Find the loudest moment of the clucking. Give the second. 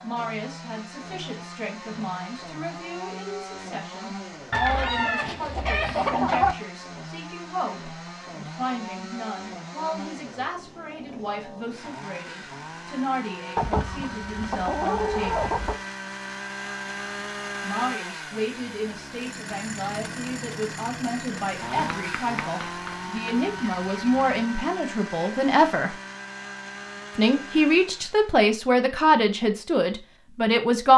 6 s.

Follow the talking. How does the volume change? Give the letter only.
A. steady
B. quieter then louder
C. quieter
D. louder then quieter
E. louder
E.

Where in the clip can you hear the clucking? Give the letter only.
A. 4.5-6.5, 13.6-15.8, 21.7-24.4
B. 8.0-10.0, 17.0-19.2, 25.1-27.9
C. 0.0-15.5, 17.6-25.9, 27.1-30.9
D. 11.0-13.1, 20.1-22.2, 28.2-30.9
A.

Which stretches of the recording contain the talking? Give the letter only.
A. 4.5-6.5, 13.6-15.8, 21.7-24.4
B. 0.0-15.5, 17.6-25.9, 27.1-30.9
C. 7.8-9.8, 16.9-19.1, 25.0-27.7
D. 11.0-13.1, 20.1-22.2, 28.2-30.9
B.